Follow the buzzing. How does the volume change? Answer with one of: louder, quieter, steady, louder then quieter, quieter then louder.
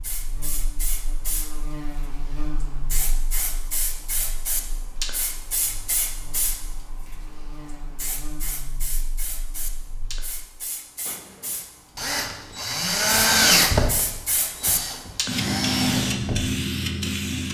quieter then louder.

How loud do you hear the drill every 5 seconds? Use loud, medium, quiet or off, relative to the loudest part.
off, off, loud, medium.